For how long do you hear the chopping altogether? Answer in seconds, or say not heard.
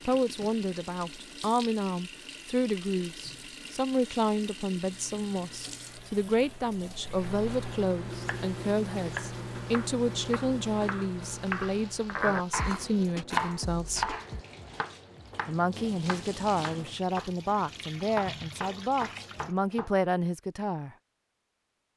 12 s.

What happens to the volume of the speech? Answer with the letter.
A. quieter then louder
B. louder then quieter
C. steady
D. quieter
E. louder
C.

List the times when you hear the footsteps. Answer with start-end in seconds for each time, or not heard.
not heard.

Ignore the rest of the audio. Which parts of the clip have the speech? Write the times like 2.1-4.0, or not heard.
0.1-14.2, 15.4-20.9.